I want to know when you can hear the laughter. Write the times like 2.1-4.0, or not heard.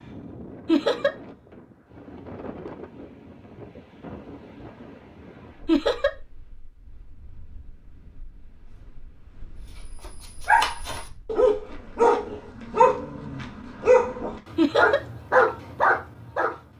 0.7-1.1, 5.7-6.2, 14.6-15.0.